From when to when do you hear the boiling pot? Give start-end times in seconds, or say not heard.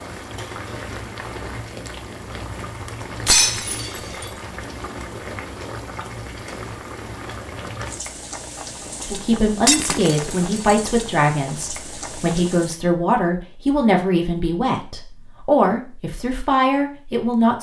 0.0-12.8.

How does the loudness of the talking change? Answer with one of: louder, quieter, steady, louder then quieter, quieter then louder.
steady.